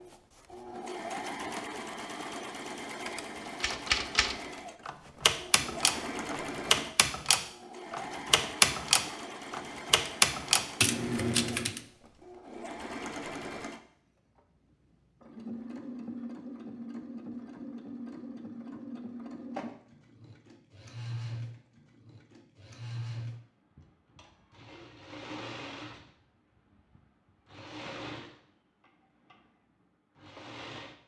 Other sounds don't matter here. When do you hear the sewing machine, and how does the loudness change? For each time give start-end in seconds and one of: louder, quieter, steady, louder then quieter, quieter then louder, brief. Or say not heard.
0.0-30.9 quieter.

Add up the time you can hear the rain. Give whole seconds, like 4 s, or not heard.
not heard.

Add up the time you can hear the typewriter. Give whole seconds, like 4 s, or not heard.
8 s.